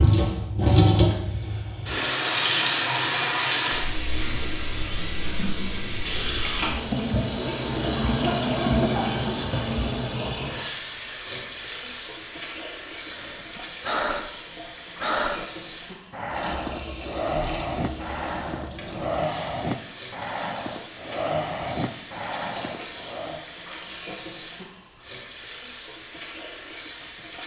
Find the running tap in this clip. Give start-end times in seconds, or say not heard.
0.0-27.4.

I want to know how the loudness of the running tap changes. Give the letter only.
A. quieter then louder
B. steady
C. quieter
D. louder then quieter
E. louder
C.